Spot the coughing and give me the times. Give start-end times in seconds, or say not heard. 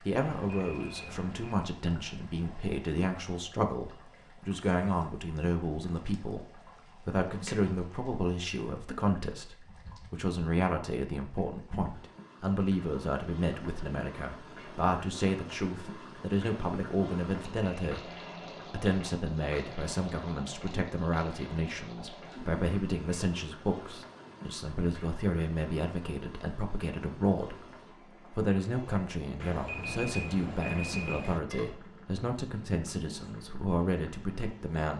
not heard.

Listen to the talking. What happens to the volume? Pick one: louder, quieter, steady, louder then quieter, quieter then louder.
steady.